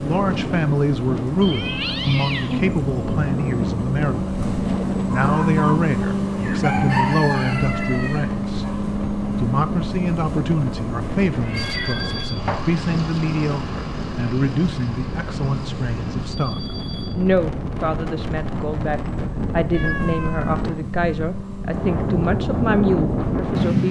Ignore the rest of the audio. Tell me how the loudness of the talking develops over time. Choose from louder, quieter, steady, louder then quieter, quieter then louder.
steady.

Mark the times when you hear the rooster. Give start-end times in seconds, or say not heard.
5.1-8.8.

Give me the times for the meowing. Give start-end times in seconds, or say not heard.
1.4-2.6, 11.2-12.7, 19.7-20.6.